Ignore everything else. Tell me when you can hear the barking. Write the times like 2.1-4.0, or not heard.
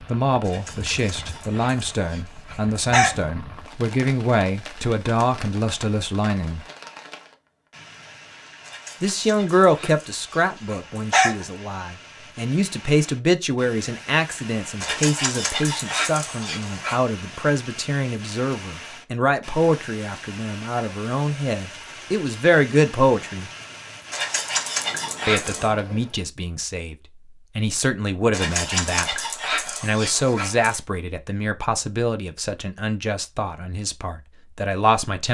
0.5-3.2, 8.7-11.4, 14.8-17.0, 24.1-25.7, 28.3-30.8.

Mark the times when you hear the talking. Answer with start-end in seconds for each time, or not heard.
0.0-6.7, 9.0-23.5, 25.2-26.9, 27.6-35.2.